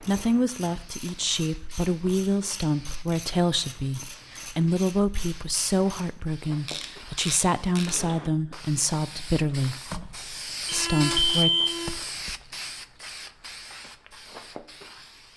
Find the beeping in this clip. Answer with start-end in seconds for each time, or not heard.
10.7-11.9.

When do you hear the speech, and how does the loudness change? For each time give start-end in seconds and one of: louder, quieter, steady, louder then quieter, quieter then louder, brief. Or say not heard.
0.0-9.8 steady
10.7-11.5 brief.